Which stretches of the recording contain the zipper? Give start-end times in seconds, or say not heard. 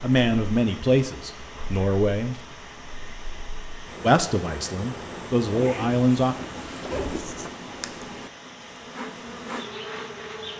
5.5-7.5.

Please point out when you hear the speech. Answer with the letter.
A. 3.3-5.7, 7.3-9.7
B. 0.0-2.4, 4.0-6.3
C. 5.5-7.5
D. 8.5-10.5
B.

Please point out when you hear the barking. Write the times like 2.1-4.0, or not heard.
not heard.